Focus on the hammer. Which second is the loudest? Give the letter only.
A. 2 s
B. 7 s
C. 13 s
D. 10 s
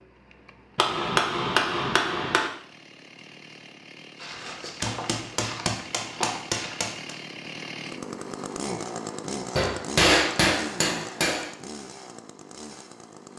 D.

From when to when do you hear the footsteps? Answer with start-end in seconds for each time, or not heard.
4.2-6.8.